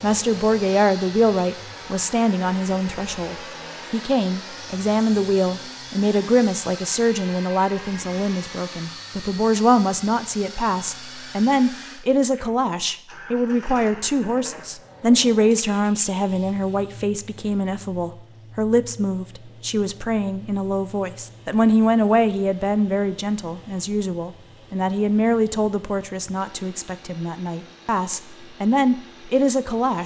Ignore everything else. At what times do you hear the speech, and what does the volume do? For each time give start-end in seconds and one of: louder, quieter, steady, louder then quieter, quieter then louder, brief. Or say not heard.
0.0-30.0 steady.